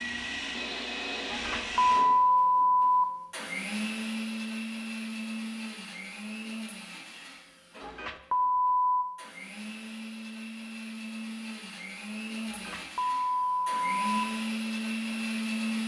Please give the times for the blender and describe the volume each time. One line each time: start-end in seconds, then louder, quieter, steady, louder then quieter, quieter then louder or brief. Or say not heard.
0.0-15.8 quieter then louder.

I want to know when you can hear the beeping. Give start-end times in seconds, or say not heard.
1.3-3.0, 7.8-9.1, 12.5-14.2.